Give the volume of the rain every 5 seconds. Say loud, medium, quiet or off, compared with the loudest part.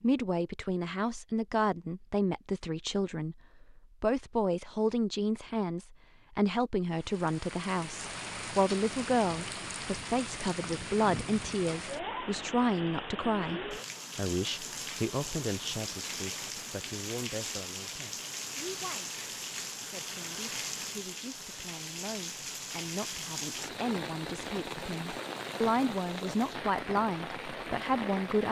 off, loud, loud, loud, loud, loud.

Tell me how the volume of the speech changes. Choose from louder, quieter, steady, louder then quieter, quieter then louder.
quieter then louder.